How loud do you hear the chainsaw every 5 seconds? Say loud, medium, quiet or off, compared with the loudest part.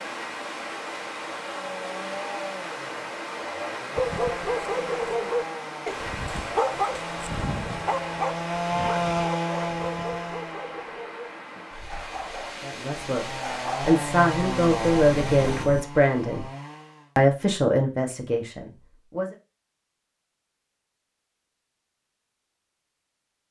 medium, loud, loud, medium, off.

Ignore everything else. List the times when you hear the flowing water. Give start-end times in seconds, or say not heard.
0.0-15.7.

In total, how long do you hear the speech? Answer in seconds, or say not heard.
6 s.